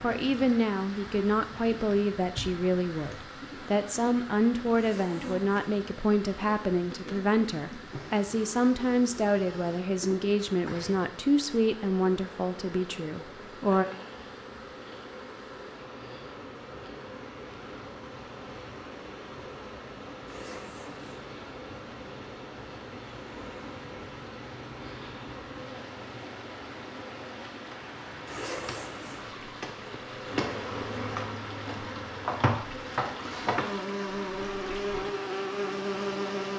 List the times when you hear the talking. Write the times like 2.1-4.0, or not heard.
0.0-13.8.